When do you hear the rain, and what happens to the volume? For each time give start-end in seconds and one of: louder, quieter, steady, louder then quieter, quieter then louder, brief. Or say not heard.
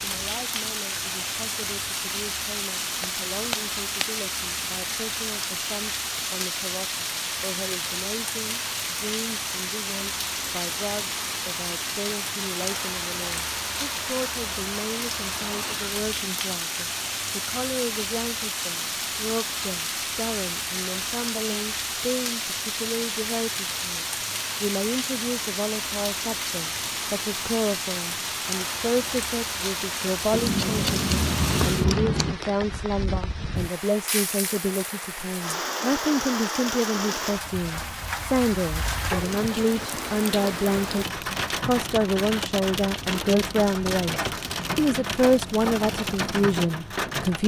0.0-47.4 steady.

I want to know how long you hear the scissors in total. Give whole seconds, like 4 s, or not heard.
3 s.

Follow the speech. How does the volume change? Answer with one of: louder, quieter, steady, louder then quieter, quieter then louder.
louder.